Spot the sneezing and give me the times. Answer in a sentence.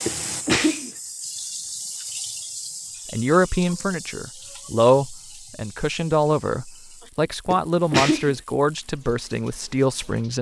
You can hear the sneezing from 0.1 to 0.9 s and from 7.5 to 8.3 s.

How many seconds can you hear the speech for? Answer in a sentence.
The speech can be heard for 7 seconds in total.